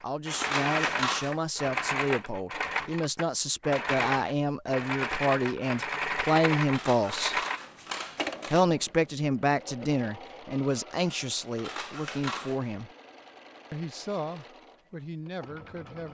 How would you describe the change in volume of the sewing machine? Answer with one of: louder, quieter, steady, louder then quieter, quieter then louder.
quieter.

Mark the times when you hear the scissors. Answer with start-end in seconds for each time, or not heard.
0.3-1.4, 6.7-8.7, 11.6-12.6.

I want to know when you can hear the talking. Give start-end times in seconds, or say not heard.
0.0-7.4, 8.5-12.9, 13.7-16.0.